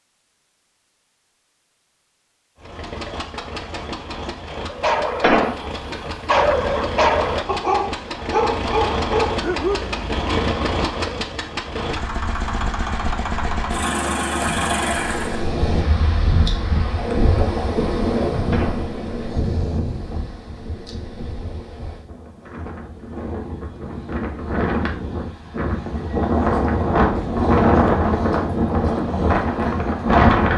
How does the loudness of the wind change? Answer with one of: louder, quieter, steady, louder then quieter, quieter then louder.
quieter then louder.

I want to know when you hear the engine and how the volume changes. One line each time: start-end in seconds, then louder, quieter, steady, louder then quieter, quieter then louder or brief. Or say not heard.
2.5-15.5 louder.